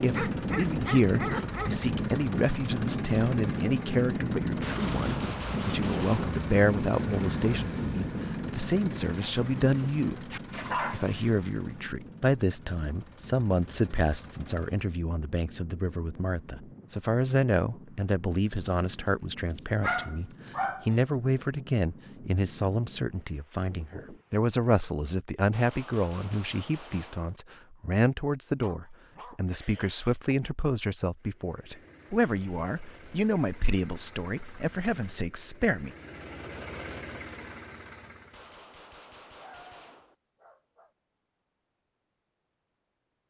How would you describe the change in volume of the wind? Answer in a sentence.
The volume of the wind goes down.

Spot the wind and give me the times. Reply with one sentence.
You can hear the wind from 0.0 to 24.4 s.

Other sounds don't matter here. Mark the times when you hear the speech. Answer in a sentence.
The speech can be heard from 0.0 to 35.9 s.